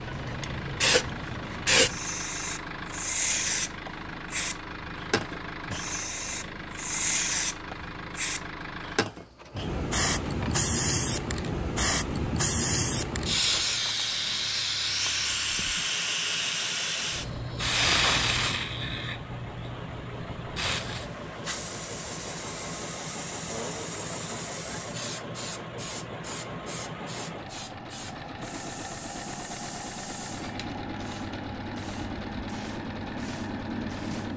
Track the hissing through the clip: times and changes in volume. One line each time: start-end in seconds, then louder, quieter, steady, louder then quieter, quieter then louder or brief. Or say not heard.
0.0-34.3 quieter.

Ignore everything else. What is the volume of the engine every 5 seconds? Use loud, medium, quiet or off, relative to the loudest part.
loud, loud, medium, medium, loud, loud, loud.